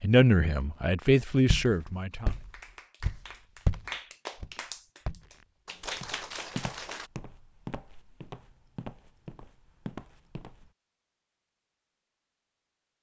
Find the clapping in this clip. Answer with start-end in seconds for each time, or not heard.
2.1-7.1.